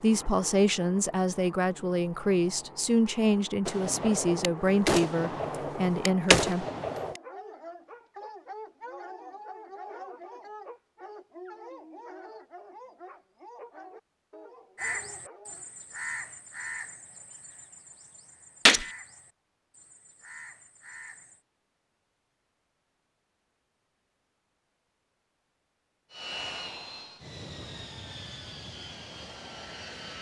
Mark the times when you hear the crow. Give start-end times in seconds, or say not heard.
14.8-21.4.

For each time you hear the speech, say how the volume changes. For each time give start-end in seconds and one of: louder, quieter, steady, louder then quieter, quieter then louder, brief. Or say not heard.
0.0-6.7 steady.